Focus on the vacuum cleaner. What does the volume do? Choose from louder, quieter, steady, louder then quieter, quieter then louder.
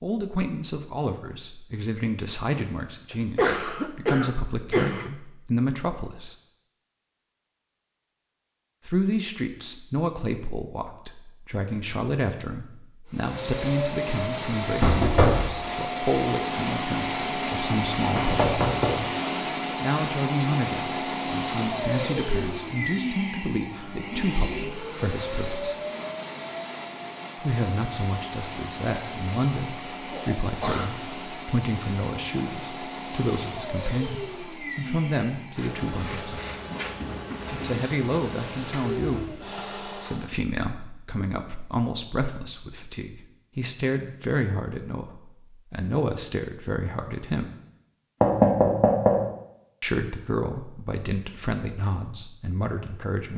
quieter.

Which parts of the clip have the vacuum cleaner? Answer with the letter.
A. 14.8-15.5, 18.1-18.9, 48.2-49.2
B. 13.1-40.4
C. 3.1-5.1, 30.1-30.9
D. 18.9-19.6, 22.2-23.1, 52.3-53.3
B.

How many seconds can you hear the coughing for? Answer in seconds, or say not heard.
3 s.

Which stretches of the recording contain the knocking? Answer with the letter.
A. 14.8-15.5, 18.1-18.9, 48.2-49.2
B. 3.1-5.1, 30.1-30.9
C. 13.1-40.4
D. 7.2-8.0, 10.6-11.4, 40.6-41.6
A.